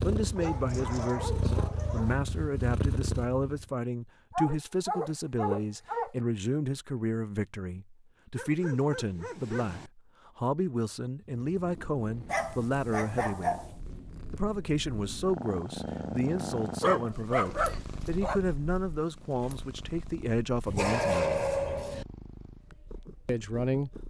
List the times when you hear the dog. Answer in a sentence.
You can hear the dog from 0.3 to 2.1 s, from 4.3 to 6.1 s, from 8.3 to 9.9 s, from 12.2 to 13.8 s, from 16.8 to 18.4 s and from 20.6 to 22.1 s.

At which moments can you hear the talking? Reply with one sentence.
You can hear the talking from 0.0 to 13.6 s, from 14.3 to 21.5 s and from 23.2 to 24.0 s.